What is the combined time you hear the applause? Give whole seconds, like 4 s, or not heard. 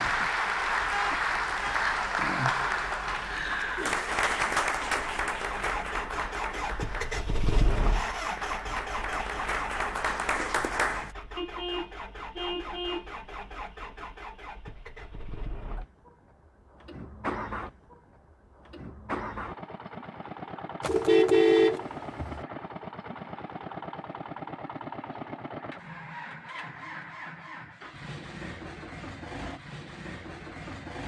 11 s.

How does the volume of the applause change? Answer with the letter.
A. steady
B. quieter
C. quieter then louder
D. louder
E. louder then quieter
C.